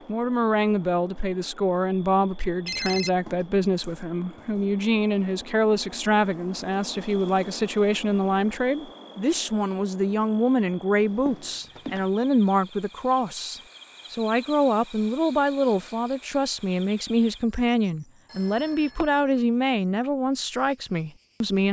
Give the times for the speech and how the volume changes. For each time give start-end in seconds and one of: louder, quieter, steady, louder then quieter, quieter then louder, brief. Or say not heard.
0.1-21.6 steady.